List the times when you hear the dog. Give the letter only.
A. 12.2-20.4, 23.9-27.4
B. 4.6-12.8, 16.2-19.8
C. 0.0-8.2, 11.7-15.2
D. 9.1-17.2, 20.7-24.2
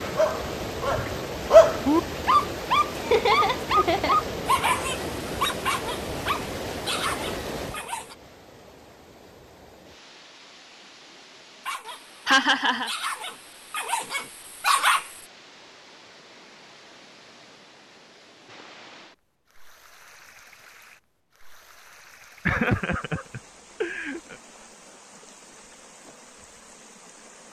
C.